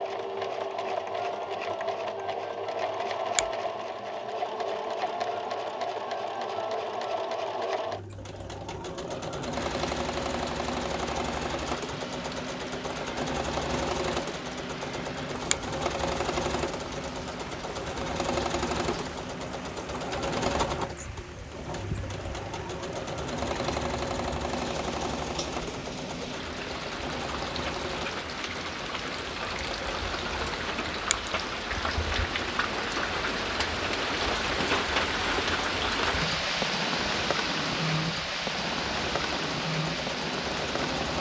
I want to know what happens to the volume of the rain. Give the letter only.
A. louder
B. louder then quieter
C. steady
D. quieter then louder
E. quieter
A.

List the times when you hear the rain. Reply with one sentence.
You can hear the rain from 9.6 to 41.1 s.